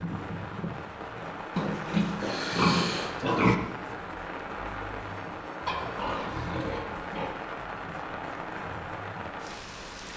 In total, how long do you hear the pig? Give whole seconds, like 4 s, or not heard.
4 s.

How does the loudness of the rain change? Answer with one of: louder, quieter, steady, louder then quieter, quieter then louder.
steady.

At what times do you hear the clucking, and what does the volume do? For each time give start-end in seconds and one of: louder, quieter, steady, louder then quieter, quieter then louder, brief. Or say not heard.
not heard.